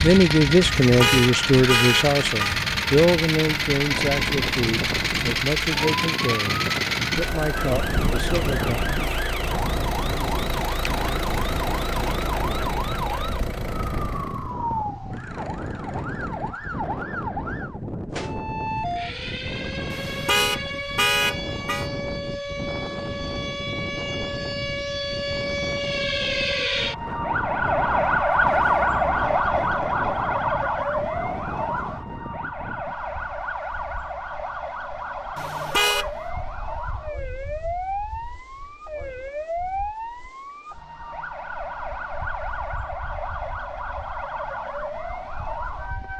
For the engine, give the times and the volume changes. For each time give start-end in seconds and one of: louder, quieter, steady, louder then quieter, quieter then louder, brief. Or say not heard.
0.0-14.6 quieter.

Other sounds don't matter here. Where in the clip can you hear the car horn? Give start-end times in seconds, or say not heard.
0.8-2.6, 19.9-21.9, 35.4-36.1.